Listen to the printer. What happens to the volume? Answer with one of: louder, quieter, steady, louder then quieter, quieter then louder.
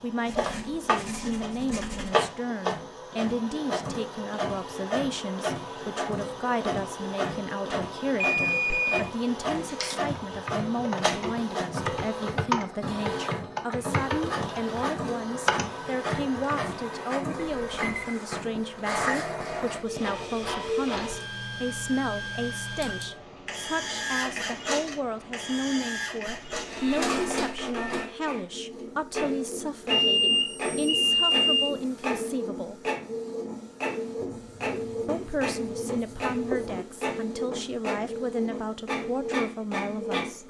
steady.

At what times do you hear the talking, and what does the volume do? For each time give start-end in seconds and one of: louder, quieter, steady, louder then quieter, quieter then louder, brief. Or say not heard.
0.0-32.8 steady
35.0-40.4 steady.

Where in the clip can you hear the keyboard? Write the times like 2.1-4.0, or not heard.
9.6-16.6.